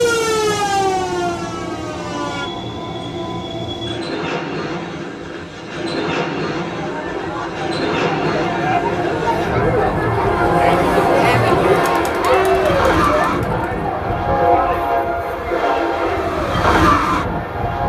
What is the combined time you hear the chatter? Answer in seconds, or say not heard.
11 s.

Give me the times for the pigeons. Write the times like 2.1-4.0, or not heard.
not heard.